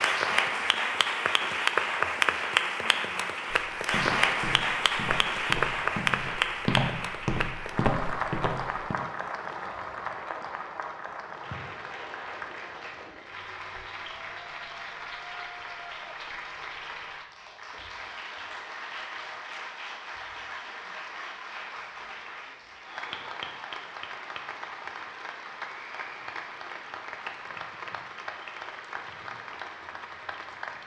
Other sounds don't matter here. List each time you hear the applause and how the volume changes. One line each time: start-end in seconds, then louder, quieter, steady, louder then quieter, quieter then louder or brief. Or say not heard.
0.0-30.8 quieter.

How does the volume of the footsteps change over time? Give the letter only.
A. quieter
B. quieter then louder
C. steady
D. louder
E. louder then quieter
D.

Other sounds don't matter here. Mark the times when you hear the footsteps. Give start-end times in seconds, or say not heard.
3.5-8.9.